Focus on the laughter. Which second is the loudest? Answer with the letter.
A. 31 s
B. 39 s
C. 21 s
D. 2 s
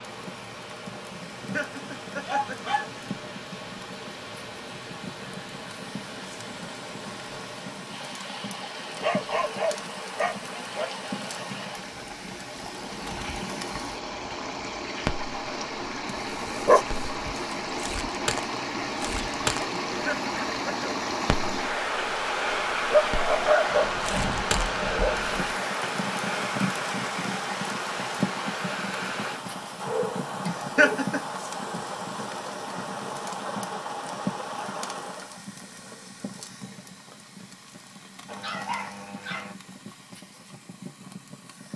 A.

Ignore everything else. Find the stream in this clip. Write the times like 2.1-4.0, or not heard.
0.0-35.5.